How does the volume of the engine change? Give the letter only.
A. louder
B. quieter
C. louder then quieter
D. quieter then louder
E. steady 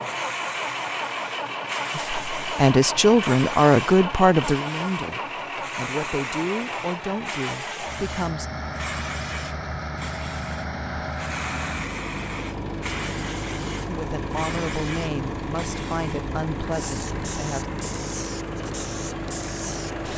E.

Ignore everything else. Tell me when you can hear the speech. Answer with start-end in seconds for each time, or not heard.
1.9-8.5, 13.8-17.6.